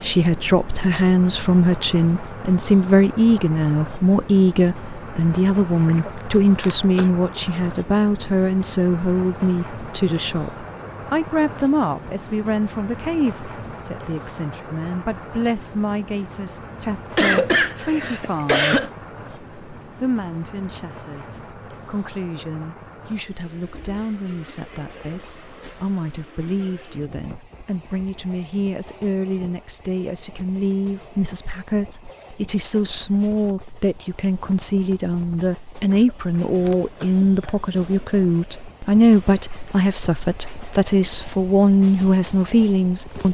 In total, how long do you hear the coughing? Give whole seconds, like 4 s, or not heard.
5 s.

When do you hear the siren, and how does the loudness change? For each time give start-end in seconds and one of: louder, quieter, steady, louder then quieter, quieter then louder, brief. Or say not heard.
not heard.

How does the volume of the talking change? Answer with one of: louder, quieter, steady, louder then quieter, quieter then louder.
quieter then louder.